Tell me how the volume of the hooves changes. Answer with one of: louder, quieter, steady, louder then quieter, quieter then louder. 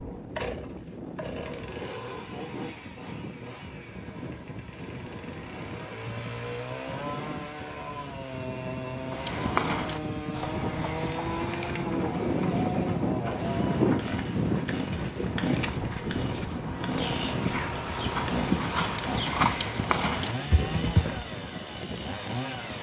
quieter then louder.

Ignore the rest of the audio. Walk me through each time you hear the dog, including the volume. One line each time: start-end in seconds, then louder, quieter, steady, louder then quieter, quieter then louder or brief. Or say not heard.
not heard.